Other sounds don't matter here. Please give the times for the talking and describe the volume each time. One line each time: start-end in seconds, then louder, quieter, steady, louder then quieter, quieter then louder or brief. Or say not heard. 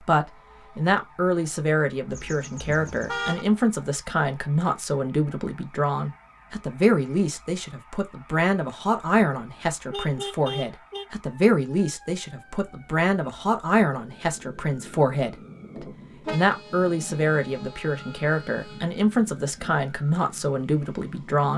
0.0-21.5 steady.